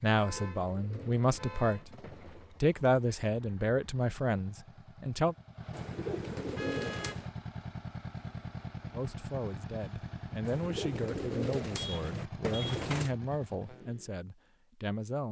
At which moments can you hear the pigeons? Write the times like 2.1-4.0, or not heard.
0.2-2.5, 5.7-7.3, 10.4-13.2.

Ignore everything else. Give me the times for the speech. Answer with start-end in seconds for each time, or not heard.
0.0-1.9, 2.6-5.3, 8.9-15.2.